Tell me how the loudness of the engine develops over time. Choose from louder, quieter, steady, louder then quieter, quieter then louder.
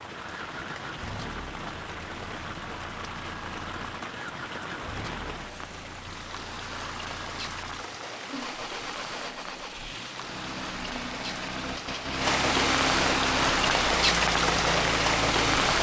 louder.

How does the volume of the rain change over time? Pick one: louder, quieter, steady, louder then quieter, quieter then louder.
louder.